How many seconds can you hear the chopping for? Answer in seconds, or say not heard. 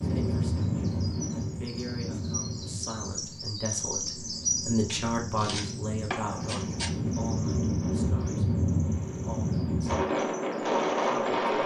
2 s.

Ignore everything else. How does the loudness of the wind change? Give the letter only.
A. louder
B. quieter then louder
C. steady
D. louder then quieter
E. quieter
B.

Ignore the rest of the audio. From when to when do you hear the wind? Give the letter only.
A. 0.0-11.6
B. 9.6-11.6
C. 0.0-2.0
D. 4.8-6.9
A.